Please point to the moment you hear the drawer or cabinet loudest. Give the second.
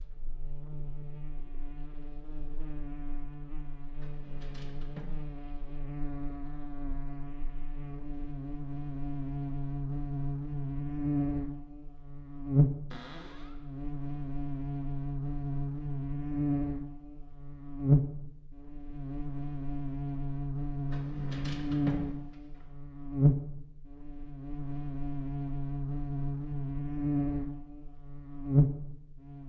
22 s.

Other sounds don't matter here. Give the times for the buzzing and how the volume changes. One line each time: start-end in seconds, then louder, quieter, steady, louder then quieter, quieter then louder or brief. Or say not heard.
0.0-29.4 louder.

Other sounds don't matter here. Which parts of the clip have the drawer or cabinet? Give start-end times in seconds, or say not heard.
4.0-5.2, 12.9-13.6, 20.9-22.1.